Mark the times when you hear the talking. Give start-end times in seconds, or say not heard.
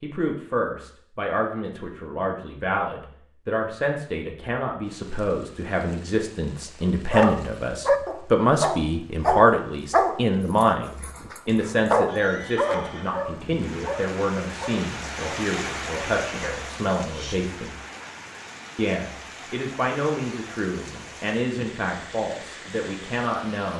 0.0-17.8, 18.8-23.7.